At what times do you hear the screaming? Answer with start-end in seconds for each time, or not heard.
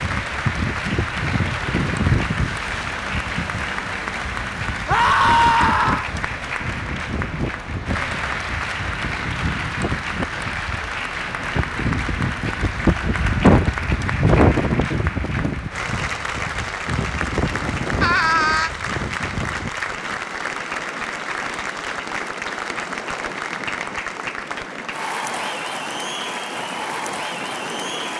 4.8-6.1, 18.0-18.7.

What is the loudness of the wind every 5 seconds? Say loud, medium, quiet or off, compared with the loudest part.
medium, medium, loud, medium, quiet, quiet.